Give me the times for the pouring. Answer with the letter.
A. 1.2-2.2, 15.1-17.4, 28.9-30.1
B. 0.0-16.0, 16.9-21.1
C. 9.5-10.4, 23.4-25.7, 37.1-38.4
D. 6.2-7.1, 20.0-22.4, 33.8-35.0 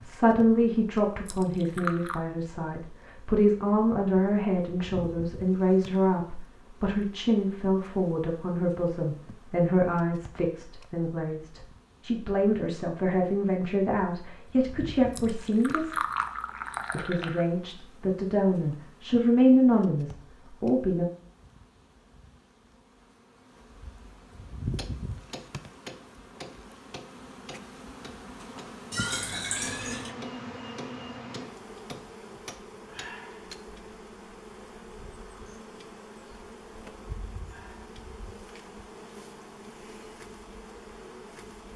A.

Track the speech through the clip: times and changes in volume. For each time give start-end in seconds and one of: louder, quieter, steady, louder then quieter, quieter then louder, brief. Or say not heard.
0.0-16.0 steady
16.9-21.1 louder then quieter.